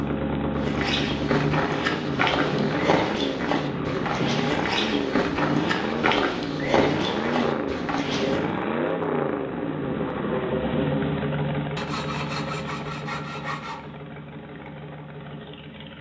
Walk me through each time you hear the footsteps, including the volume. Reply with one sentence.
The footsteps can be heard from 0.6 to 8.4 s, at a steady volume.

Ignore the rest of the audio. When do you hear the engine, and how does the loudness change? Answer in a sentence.
You can hear the engine from 0.0 to 15.9 s, getting quieter.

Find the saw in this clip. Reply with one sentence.
The saw can be heard from 11.8 to 13.8 s.